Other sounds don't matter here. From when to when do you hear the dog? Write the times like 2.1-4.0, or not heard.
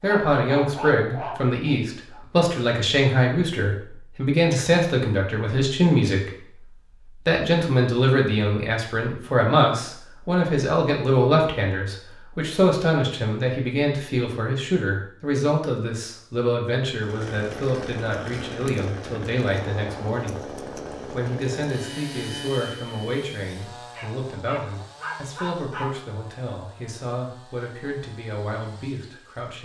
0.0-2.2, 23.9-25.9.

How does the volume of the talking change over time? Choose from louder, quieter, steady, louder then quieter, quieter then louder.
quieter.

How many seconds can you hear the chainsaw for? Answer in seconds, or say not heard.
13 s.